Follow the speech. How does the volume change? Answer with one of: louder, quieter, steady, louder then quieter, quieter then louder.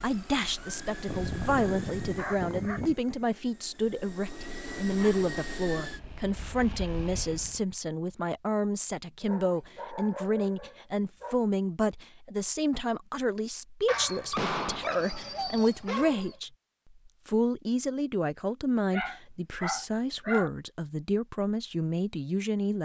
steady.